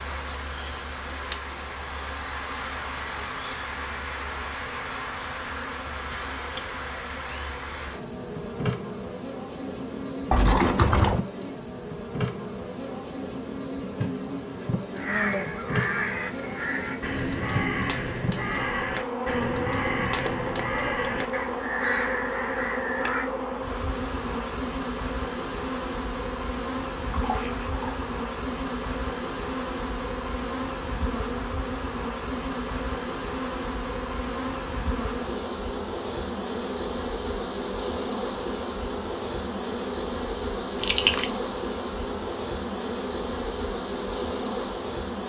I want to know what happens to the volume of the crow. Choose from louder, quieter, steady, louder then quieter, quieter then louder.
steady.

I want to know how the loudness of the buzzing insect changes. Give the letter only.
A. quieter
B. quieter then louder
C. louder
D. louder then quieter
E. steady
E.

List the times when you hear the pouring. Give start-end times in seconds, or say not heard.
10.3-11.2, 27.1-27.9, 40.8-41.3.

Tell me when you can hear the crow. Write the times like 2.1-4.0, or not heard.
14.9-23.3.